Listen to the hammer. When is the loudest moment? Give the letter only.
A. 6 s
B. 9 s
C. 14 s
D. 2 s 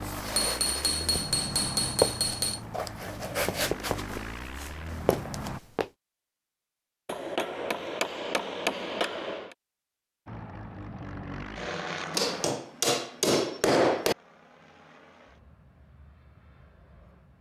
C.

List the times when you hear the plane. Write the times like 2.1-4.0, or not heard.
0.0-5.6, 10.2-17.3.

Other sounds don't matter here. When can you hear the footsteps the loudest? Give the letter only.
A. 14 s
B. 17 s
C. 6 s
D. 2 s
D.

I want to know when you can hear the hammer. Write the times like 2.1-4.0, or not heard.
0.2-2.6, 7.0-9.6, 12.1-14.2.